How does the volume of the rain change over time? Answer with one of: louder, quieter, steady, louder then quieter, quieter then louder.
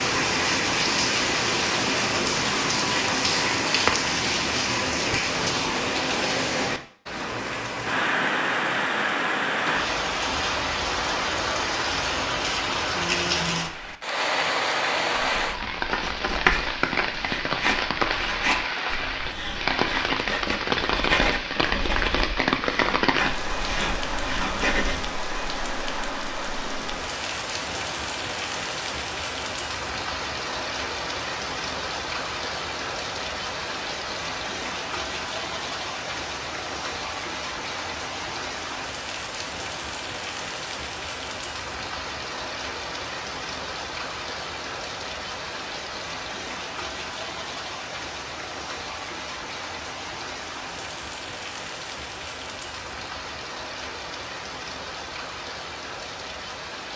quieter.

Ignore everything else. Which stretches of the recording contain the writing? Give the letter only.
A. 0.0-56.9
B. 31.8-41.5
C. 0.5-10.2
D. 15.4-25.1
D.